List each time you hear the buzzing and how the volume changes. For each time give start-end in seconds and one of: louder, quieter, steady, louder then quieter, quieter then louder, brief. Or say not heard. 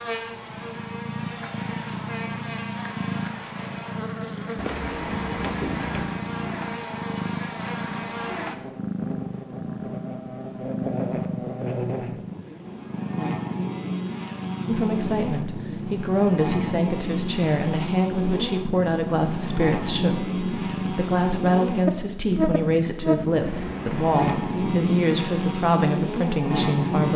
0.0-27.1 louder.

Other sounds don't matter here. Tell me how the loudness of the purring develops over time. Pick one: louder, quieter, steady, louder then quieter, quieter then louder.
steady.